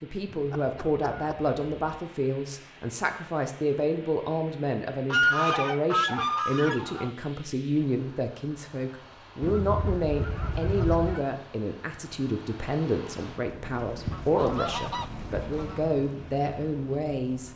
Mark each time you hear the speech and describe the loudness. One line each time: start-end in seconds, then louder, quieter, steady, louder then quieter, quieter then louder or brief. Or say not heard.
0.0-17.5 steady.